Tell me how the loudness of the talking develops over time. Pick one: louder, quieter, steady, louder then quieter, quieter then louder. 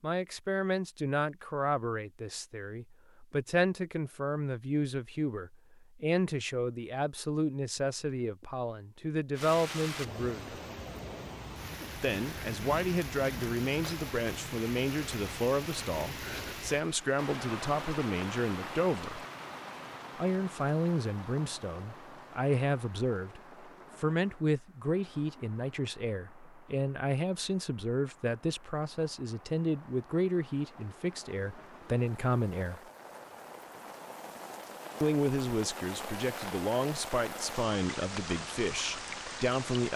steady.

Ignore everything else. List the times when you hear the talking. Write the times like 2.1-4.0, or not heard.
0.0-10.6, 11.9-19.2, 20.1-32.8, 35.0-39.9.